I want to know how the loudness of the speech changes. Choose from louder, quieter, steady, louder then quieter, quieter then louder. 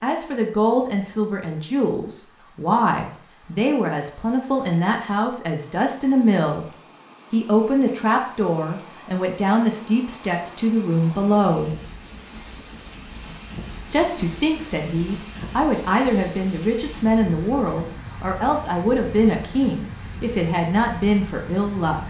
steady.